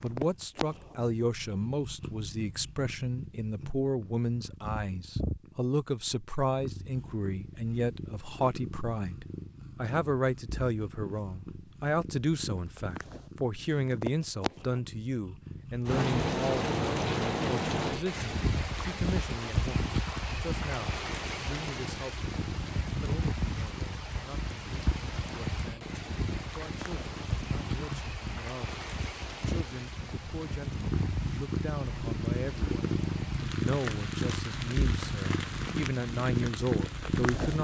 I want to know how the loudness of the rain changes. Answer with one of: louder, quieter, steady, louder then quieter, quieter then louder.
quieter.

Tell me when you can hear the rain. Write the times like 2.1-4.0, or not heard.
15.8-37.5.